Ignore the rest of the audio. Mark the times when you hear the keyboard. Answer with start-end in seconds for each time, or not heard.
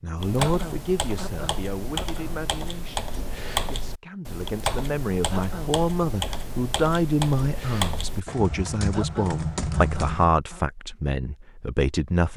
0.1-10.3.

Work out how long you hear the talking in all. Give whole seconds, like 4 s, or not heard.
12 s.